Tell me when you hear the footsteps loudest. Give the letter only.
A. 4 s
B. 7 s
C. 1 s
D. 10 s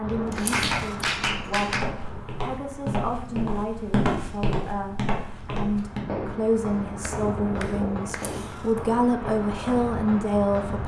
A.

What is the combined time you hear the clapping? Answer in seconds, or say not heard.
3 s.